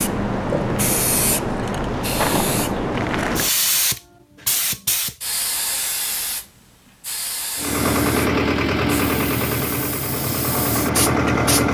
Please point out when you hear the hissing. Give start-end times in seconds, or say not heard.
0.0-11.7.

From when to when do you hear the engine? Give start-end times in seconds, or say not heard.
7.5-11.7.